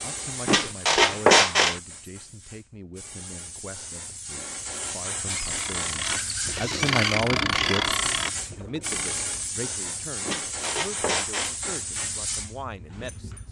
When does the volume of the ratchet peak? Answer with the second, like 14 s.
7 s.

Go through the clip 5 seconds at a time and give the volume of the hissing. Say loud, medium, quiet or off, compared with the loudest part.
medium, loud, loud.